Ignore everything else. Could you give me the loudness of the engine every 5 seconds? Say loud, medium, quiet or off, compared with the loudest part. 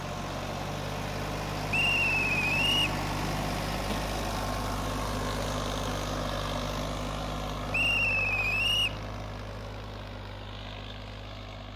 loud, loud, medium.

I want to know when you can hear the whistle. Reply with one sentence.
The whistle can be heard from 1.7 to 3.0 s and from 7.7 to 9.0 s.